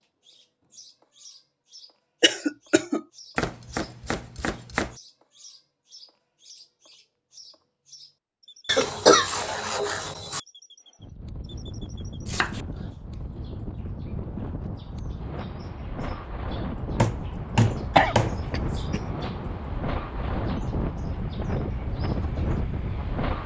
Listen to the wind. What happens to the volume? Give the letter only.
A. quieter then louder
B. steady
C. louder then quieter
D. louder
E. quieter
D.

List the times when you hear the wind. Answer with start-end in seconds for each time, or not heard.
11.0-23.4.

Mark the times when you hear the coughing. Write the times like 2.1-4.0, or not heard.
2.2-3.0, 8.7-10.4, 17.9-19.0.